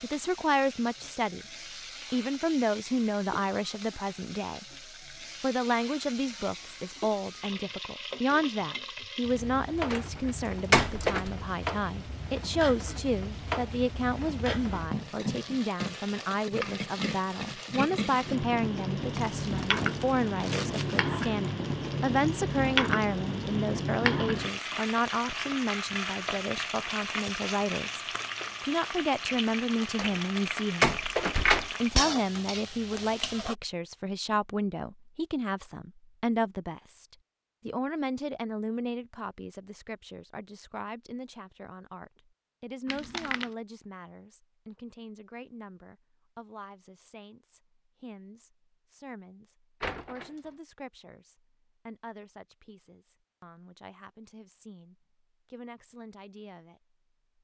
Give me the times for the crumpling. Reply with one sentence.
The crumpling can be heard from 19.1 to 21.0 s and from 42.9 to 43.5 s.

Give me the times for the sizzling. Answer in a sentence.
The sizzling can be heard from 0.0 to 33.5 s.